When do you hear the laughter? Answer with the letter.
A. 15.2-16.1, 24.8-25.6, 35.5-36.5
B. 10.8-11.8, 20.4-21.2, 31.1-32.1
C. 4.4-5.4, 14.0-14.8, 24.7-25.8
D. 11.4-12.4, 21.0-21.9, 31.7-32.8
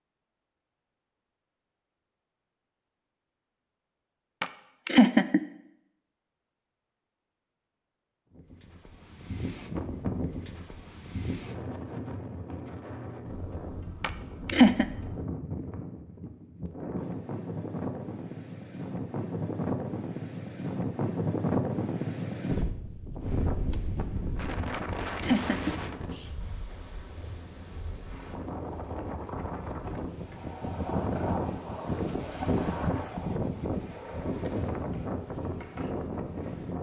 C.